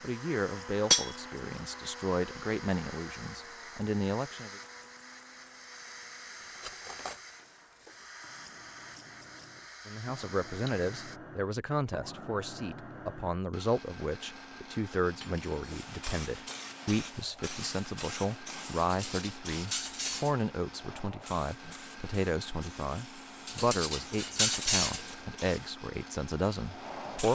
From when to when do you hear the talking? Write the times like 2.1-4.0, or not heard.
0.0-4.6, 9.8-27.2.